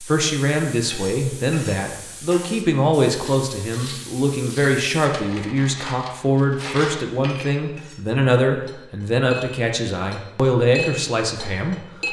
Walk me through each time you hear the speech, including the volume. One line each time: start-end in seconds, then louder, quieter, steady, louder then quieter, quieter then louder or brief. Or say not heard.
0.0-12.0 steady.